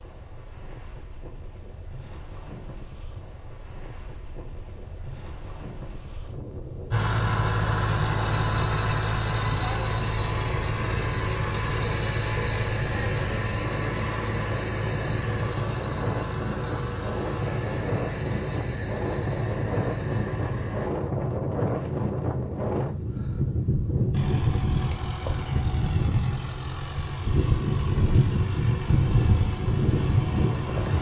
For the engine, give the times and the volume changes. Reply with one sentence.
The engine can be heard from 6.9 to 20.9 s, getting quieter; and from 24.1 to 30.9 s, at a steady volume.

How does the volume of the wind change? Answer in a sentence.
The volume of the wind goes up.